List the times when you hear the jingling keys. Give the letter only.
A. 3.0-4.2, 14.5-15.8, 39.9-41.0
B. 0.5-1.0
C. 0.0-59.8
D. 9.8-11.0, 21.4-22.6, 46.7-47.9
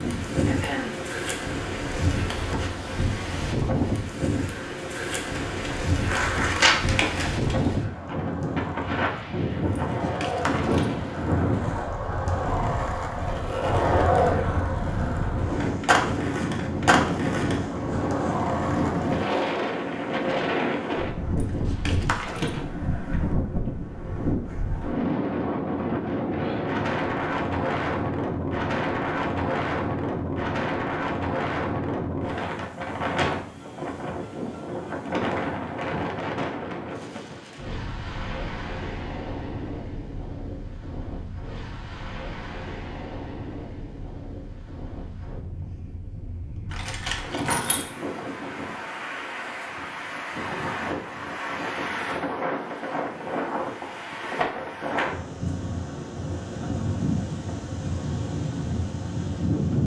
D.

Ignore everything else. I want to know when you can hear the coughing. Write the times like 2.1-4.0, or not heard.
0.5-1.0.